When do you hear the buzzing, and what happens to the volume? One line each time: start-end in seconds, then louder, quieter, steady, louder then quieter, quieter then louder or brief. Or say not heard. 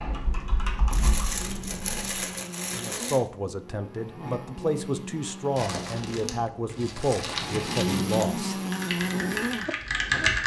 0.1-10.4 louder.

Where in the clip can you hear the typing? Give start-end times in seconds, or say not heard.
0.0-2.0, 8.6-10.4.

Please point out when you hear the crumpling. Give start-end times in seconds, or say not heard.
0.9-3.2, 5.5-8.2.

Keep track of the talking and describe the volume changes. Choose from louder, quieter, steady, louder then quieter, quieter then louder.
steady.